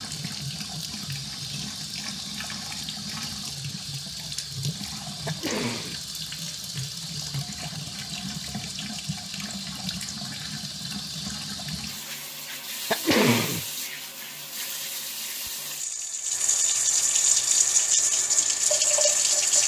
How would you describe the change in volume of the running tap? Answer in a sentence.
The volume of the running tap goes up.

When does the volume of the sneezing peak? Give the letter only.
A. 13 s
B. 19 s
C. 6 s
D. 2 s
A.